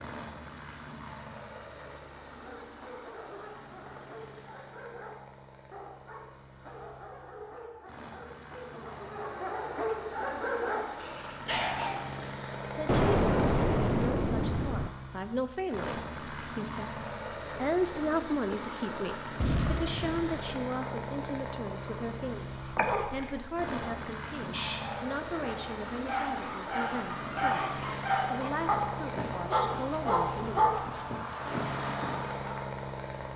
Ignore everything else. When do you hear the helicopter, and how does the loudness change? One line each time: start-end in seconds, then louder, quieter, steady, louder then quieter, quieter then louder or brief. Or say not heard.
0.0-33.3 louder.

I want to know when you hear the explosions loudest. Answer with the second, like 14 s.
13 s.